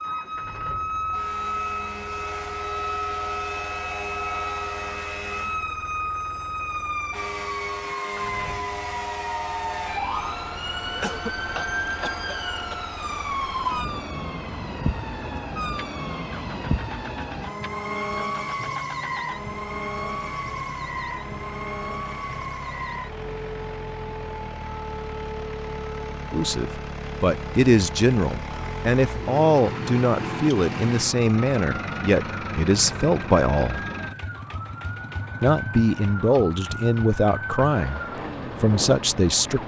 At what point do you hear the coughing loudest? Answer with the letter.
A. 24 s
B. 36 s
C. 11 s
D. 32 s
C.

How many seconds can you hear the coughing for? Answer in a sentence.
The coughing can be heard for 2 seconds in total.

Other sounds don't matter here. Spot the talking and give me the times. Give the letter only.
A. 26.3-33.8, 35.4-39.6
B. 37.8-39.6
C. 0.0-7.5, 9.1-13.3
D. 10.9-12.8
A.